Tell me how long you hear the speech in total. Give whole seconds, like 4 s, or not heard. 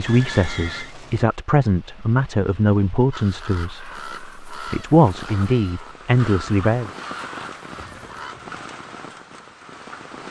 7 s.